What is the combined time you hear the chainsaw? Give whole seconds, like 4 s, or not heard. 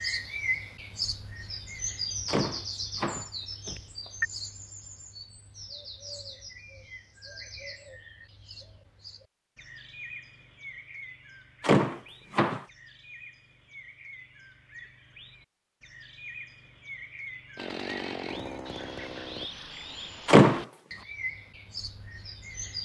2 s.